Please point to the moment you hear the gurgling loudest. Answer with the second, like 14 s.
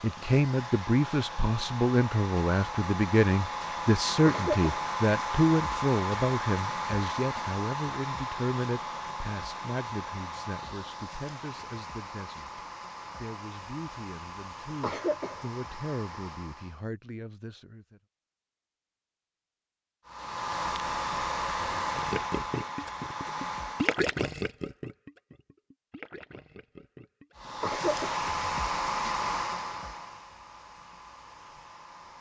24 s.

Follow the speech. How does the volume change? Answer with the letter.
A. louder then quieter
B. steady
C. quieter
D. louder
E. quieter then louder
C.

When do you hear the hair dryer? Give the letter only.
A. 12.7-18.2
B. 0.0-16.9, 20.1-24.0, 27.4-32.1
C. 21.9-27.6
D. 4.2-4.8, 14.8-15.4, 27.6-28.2
B.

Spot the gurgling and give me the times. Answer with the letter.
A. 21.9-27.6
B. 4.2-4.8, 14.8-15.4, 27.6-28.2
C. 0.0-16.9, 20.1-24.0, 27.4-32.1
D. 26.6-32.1
A.